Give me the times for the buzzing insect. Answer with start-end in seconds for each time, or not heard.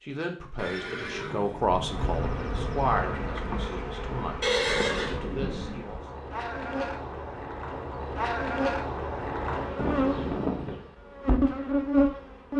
1.6-12.5.